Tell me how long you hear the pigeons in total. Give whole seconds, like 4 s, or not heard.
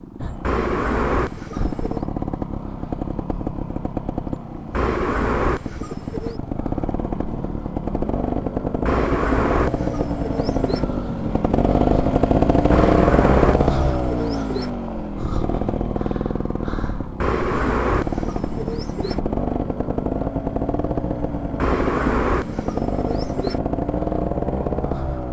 11 s.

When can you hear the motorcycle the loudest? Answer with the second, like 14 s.
13 s.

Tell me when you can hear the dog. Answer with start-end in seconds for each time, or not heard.
not heard.